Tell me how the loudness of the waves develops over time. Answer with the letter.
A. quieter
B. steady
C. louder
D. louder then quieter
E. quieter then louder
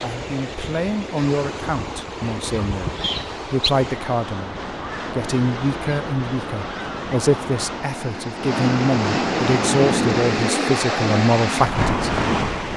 C.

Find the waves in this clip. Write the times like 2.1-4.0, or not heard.
0.0-12.7.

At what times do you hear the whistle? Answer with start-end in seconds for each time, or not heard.
3.0-3.8.